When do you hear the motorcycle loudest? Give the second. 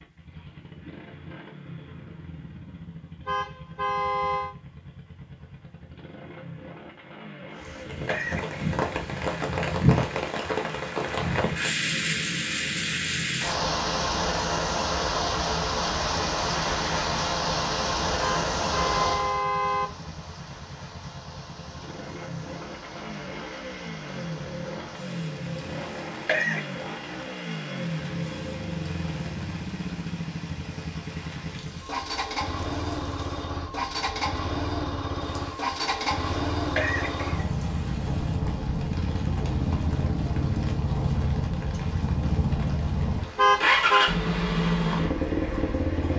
44 s.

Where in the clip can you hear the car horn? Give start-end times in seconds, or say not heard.
3.2-4.5, 18.2-19.9, 43.4-44.1.